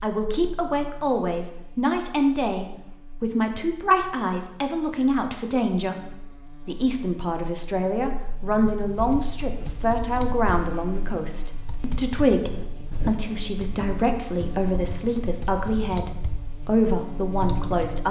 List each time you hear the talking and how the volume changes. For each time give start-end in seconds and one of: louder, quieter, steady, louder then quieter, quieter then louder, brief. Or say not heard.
0.0-18.0 steady.